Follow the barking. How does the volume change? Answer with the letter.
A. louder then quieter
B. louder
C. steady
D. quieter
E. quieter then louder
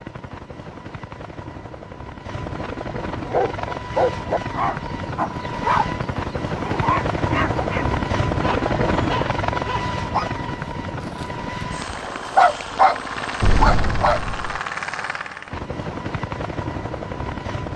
E.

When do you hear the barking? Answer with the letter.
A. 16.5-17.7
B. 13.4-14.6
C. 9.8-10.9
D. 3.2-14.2
D.